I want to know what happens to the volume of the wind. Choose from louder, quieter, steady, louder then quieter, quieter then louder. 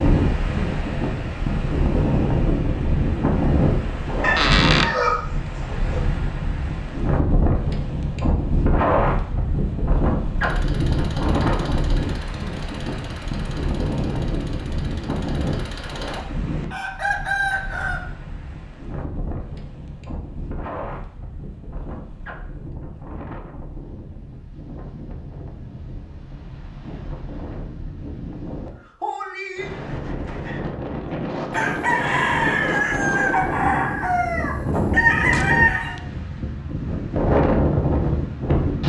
quieter then louder.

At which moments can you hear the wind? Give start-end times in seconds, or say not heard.
0.0-38.8.